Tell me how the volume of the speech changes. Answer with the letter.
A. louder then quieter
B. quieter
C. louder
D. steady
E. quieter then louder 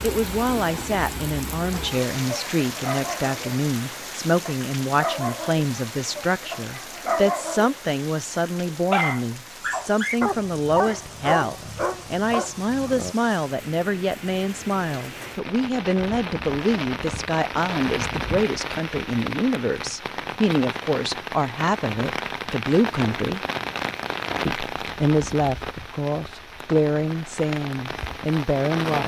D.